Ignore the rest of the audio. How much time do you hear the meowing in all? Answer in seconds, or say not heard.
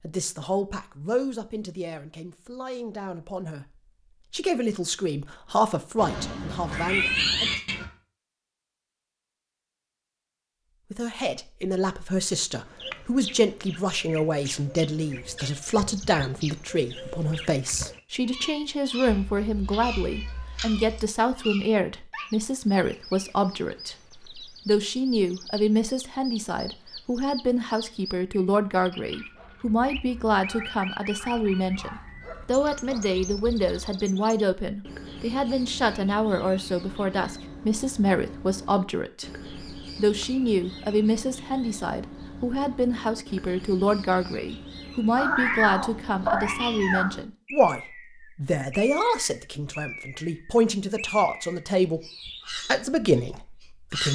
6 s.